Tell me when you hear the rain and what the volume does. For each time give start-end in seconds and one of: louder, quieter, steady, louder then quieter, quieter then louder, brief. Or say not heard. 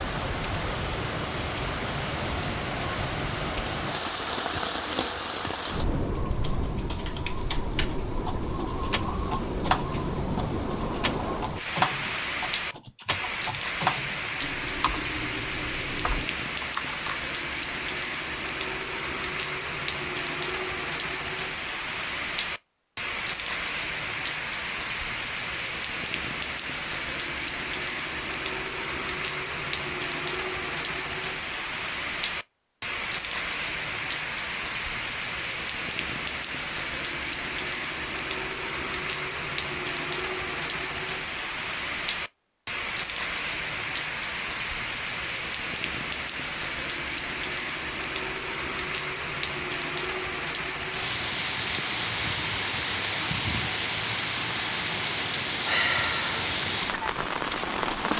0.0-58.1 steady.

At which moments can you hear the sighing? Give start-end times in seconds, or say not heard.
55.6-56.5.